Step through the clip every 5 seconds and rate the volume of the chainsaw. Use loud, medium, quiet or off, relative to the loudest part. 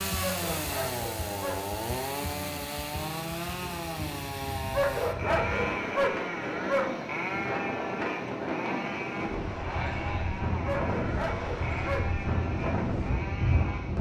loud, loud, medium.